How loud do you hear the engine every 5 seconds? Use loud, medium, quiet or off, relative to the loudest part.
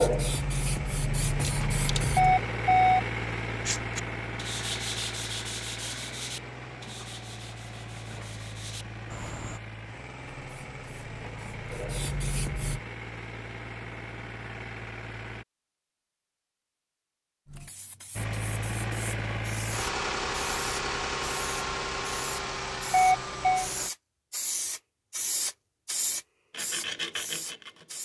loud, medium, medium, loud, loud, off.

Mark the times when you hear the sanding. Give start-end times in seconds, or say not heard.
3.6-9.6, 26.5-28.0.